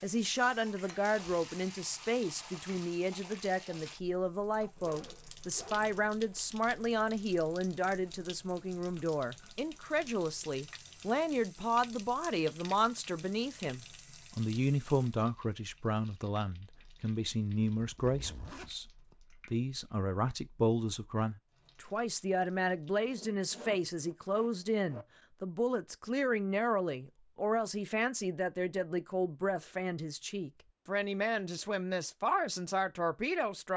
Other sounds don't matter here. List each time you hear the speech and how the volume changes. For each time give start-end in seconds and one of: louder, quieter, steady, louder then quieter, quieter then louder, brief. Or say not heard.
0.0-33.7 steady.